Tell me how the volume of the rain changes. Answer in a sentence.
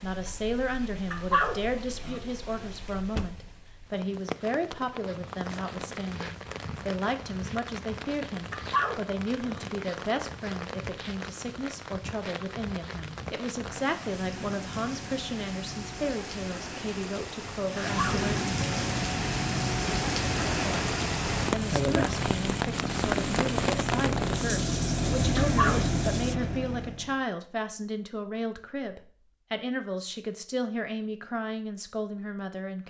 The volume of the rain goes up.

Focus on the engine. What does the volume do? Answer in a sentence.
The loudness of the engine goes up.